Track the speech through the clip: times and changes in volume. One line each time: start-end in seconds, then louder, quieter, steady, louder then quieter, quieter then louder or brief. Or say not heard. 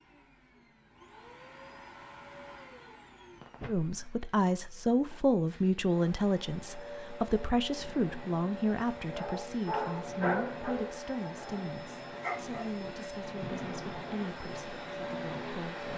3.6-15.9 quieter.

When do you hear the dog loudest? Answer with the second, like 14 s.
10 s.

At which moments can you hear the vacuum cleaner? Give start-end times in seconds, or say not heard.
0.0-15.9.